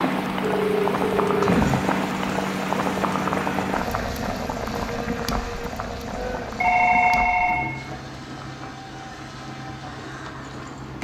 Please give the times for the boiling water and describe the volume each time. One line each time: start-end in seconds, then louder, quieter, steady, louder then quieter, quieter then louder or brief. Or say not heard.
0.0-11.0 quieter.